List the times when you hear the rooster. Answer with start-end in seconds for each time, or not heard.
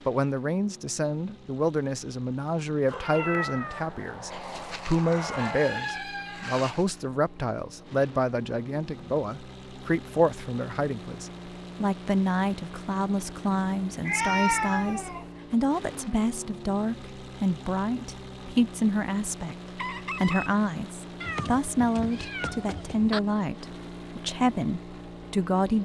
4.3-6.9, 19.8-20.5.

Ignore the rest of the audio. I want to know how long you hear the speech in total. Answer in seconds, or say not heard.
25 s.